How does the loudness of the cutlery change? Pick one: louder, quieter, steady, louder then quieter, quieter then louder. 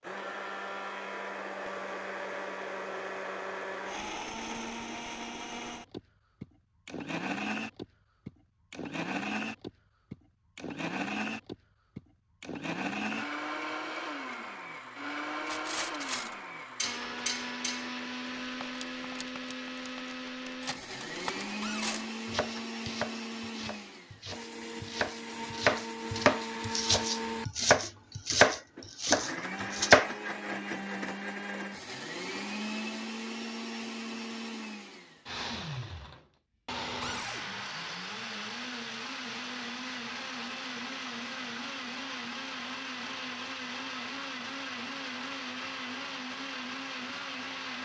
quieter then louder.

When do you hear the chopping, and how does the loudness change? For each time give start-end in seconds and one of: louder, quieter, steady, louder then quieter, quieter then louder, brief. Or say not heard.
22.2-30.1 louder.